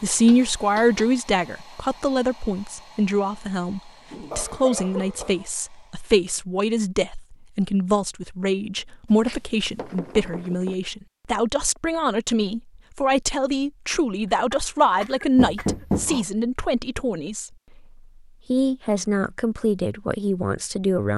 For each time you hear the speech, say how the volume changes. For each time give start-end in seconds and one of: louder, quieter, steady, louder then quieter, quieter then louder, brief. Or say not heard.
0.0-17.5 steady
18.5-21.1 brief.